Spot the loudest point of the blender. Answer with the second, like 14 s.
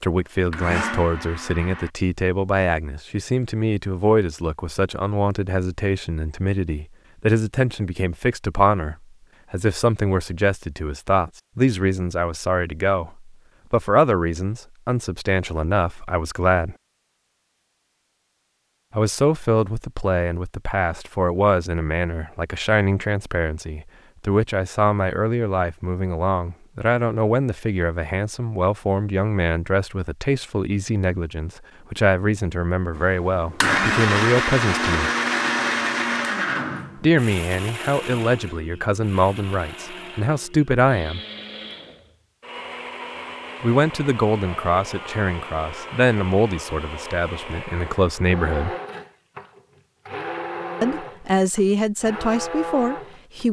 34 s.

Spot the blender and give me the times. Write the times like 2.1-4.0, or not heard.
0.3-1.9, 33.0-53.4.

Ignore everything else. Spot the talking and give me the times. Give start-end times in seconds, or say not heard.
0.0-16.8, 18.9-35.1, 37.0-41.2, 43.6-48.8, 50.8-53.4.